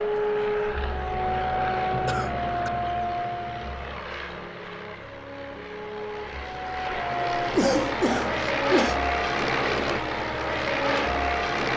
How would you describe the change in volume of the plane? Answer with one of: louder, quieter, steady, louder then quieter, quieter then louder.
quieter then louder.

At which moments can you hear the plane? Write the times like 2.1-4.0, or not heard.
0.0-11.7.